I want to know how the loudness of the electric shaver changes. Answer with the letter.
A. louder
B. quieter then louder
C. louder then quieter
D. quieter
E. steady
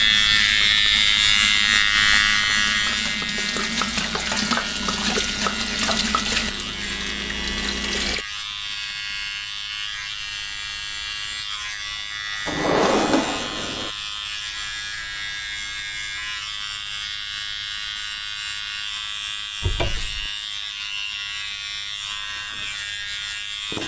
D.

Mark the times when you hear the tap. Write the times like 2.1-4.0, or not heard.
0.0-8.2.